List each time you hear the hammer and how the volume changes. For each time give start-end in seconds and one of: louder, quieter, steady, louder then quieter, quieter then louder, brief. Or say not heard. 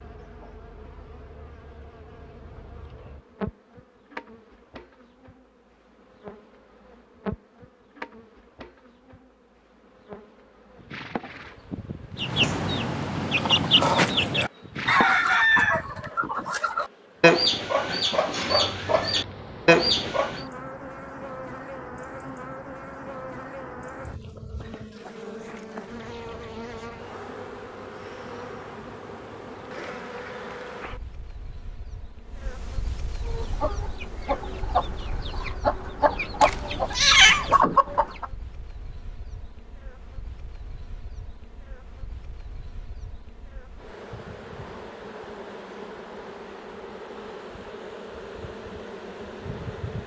not heard.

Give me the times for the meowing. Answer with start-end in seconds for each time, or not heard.
36.4-37.6.